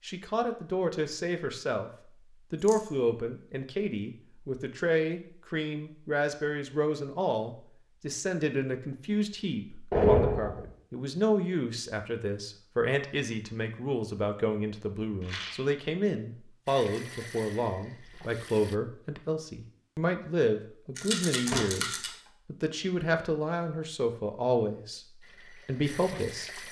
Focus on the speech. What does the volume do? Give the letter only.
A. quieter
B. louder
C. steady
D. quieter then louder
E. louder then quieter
C.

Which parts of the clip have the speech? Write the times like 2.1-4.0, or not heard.
0.0-26.6.